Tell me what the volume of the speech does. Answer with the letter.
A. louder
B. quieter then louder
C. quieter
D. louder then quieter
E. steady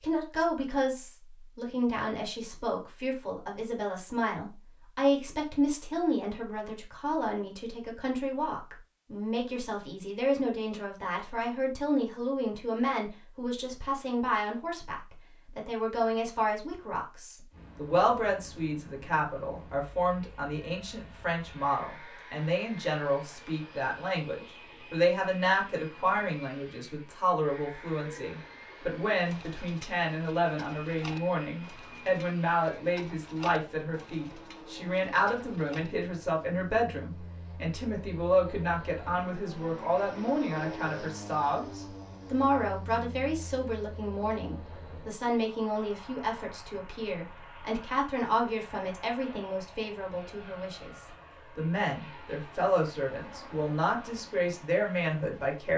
E.